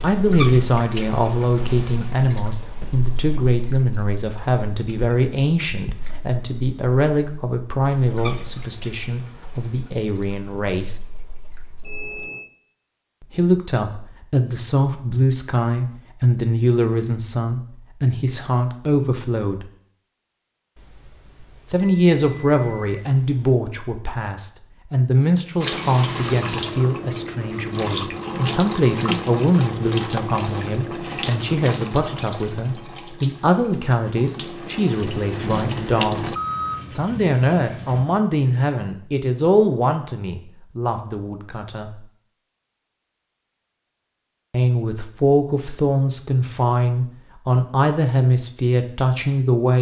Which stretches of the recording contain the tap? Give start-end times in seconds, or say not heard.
0.0-12.3, 25.6-36.4.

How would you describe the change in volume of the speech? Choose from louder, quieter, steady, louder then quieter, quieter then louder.
steady.